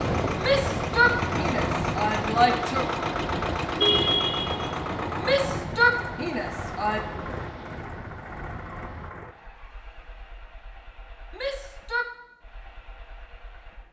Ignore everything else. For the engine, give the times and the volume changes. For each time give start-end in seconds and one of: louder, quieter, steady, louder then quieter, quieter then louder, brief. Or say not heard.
0.0-13.8 quieter.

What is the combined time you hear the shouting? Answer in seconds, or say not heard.
5 s.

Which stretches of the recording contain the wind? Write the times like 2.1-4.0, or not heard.
0.0-9.2.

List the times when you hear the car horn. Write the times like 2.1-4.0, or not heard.
3.8-4.7.